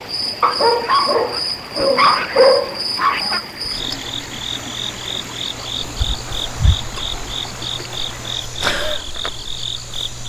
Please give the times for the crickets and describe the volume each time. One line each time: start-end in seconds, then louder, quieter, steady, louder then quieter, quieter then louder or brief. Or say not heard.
0.0-10.2 steady.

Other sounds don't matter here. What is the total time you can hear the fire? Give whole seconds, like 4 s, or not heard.
not heard.